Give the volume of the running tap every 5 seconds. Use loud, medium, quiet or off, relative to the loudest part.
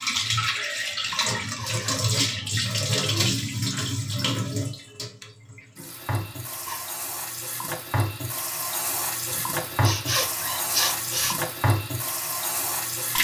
loud, medium, loud.